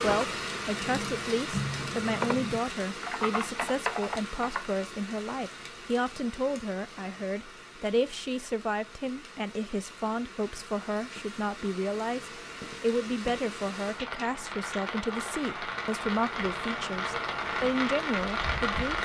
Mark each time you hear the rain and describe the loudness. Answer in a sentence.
The rain can be heard from 0.0 to 19.0 s, getting quieter then louder.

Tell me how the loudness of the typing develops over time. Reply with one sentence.
The volume of the typing goes up.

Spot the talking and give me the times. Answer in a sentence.
The talking can be heard from 0.0 to 19.0 s.